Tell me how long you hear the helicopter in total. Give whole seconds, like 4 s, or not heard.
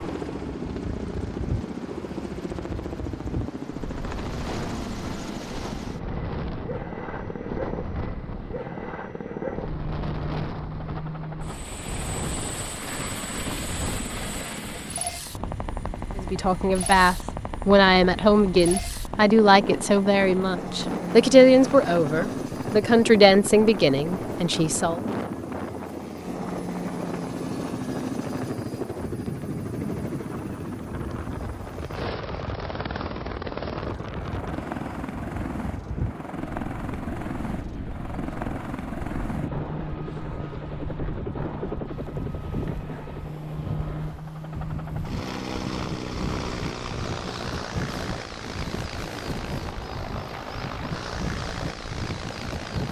53 s.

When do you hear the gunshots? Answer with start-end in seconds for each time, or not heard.
not heard.